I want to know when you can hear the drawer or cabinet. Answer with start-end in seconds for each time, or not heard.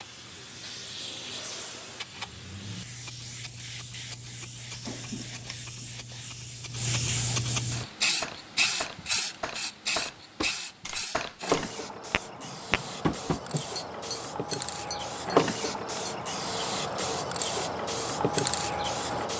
4.7-5.5, 12.3-13.7.